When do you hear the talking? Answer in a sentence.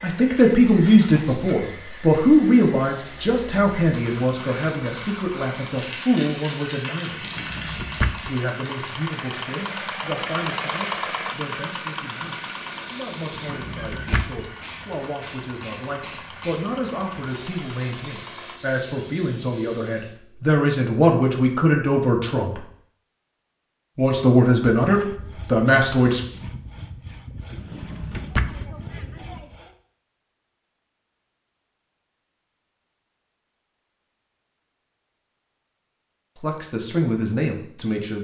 You can hear the talking from 0.0 to 7.2 s, from 8.2 to 22.6 s, from 23.9 to 26.2 s and from 36.4 to 38.1 s.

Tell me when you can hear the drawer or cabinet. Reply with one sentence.
You can hear the drawer or cabinet from 7.2 to 8.3 s, from 13.3 to 14.4 s and from 27.6 to 28.7 s.